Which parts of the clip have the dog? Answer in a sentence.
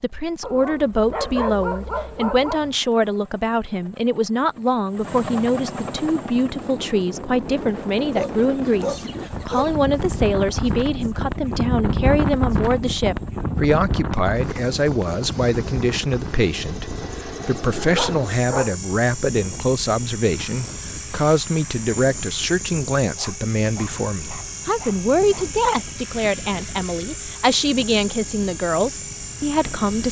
The dog can be heard from 0.4 to 2.8 s, from 8.1 to 9.8 s, from 17.0 to 18.8 s and from 23.1 to 25.6 s.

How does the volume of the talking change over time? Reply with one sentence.
The loudness of the talking stays about the same.